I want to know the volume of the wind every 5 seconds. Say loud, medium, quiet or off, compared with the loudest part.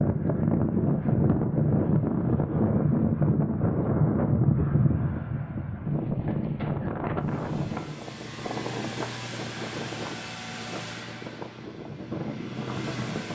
loud, medium, quiet.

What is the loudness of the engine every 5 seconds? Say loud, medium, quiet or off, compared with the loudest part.
off, loud, loud.